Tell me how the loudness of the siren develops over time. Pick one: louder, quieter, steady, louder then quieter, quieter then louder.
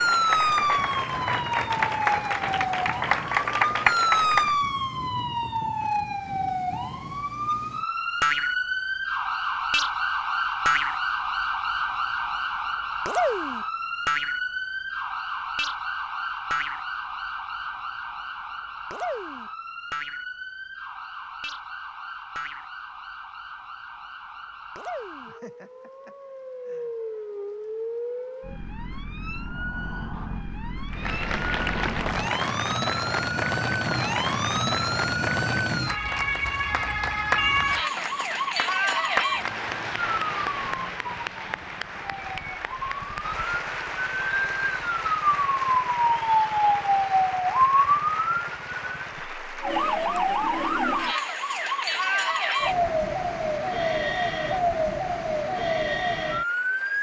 quieter then louder.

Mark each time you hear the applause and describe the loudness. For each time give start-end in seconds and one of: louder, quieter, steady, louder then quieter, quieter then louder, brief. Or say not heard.
0.0-4.5 louder
30.9-56.9 quieter.